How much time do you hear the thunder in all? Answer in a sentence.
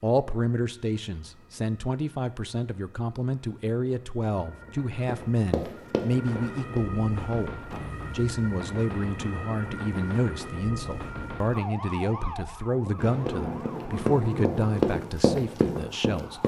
You can hear the thunder for 2 seconds altogether.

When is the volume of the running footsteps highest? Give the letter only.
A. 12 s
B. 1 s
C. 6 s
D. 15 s
D.